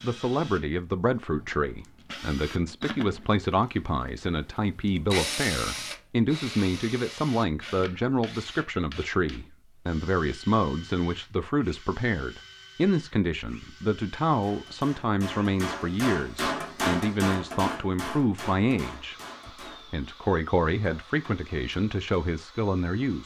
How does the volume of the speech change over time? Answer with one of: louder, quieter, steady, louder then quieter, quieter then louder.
steady.